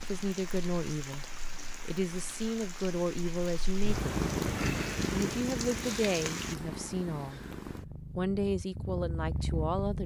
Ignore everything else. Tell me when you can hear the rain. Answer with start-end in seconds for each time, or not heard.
0.0-6.5.